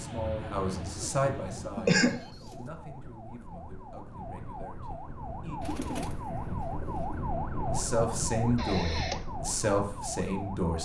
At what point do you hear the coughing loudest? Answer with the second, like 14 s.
2 s.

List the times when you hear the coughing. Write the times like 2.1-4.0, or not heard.
1.2-2.2, 8.6-9.2.